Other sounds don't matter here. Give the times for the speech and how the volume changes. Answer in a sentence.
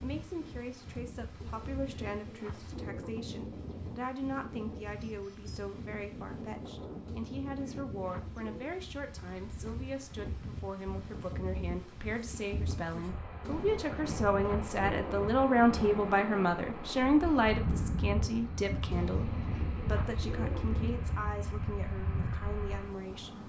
You can hear the speech from 0.0 to 23.4 s, getting louder then quieter.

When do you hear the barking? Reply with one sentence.
The barking can't be heard in this clip.